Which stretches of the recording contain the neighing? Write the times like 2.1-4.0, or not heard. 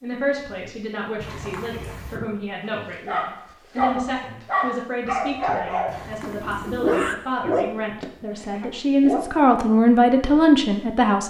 1.2-2.2, 5.8-7.2.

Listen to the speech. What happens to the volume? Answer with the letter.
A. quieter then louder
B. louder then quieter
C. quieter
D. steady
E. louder
E.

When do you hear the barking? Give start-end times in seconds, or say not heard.
2.9-9.3.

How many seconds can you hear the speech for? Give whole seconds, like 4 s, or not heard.
11 s.